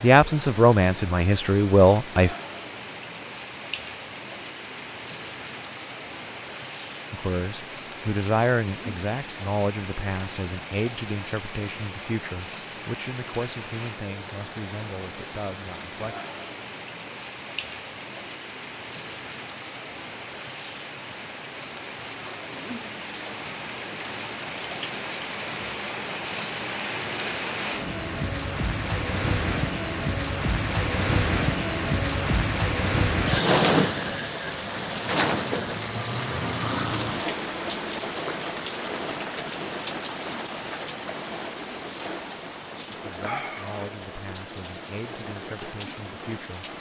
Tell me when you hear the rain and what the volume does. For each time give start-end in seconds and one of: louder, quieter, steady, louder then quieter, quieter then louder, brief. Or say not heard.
0.0-46.7 louder then quieter.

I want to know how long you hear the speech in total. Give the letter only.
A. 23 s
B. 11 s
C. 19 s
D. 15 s
D.